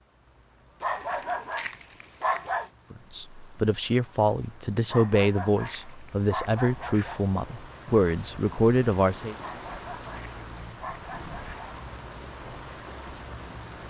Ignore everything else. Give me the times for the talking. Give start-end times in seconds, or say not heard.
2.9-9.3.